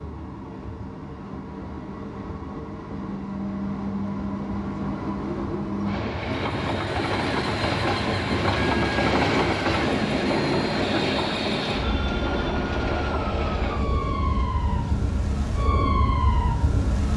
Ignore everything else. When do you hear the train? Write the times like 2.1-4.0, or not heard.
0.0-17.1.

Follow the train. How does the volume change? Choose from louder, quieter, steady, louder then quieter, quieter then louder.
louder then quieter.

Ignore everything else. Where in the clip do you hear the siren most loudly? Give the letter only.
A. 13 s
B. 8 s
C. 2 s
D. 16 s
D.